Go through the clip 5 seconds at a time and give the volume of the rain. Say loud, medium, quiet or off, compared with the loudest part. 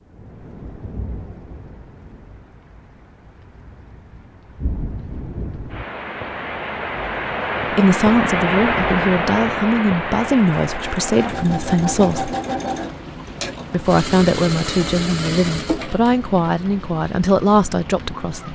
quiet, loud, medium, quiet.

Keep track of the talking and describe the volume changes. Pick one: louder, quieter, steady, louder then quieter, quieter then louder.
steady.